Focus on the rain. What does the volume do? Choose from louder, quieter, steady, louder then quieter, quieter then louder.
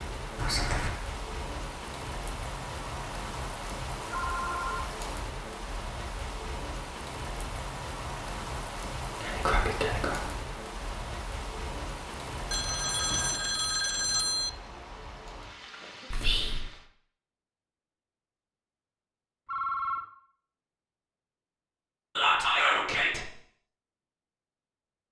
quieter.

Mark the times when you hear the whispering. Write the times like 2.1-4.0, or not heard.
0.3-0.9, 9.2-10.3, 16.1-16.6, 22.1-23.2.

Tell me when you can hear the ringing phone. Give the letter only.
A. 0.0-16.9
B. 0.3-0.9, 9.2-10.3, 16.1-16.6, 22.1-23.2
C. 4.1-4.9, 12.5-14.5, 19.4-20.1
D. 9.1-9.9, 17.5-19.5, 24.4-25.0
C.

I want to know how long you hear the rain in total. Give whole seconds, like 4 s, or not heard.
17 s.